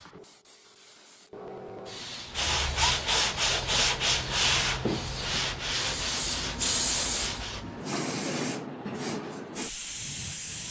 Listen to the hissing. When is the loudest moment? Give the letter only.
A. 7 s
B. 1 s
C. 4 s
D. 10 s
A.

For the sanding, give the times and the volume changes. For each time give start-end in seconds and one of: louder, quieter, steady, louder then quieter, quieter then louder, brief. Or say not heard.
2.3-7.7 quieter.